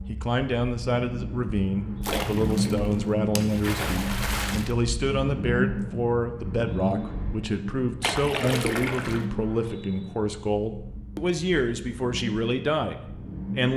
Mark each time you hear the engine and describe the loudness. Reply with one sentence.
You can hear the engine from 0.0 to 13.7 s, getting quieter.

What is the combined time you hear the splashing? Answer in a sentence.
You can hear the splashing for 4 seconds altogether.